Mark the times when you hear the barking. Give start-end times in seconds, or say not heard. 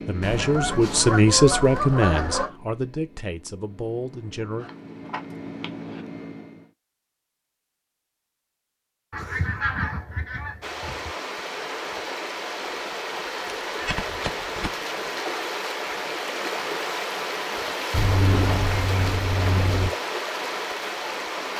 not heard.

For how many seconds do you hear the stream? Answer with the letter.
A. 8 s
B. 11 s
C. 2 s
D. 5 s
B.